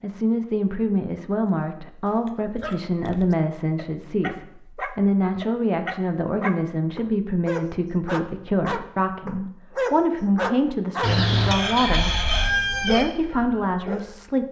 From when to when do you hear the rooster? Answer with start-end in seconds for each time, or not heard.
11.0-13.1.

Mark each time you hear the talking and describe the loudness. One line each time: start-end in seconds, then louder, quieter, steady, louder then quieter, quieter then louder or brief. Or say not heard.
0.0-12.2 steady
12.8-14.4 brief.